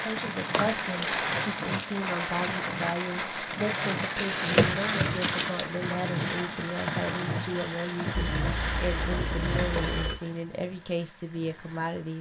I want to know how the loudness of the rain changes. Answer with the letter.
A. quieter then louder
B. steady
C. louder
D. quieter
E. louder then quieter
D.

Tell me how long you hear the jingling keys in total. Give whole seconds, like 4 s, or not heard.
5 s.